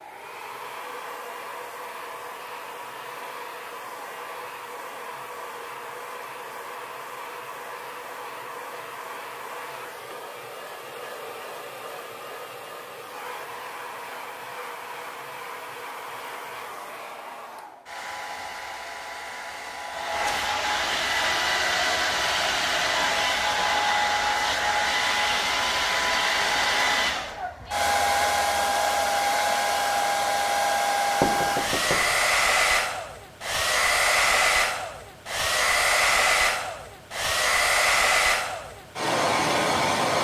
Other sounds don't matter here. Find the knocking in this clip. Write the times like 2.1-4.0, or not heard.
31.2-32.2.